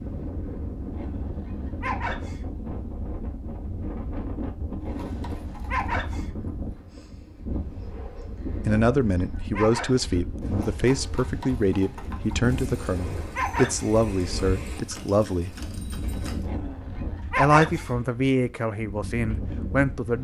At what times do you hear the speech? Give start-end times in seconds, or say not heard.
8.7-15.6, 17.4-20.1.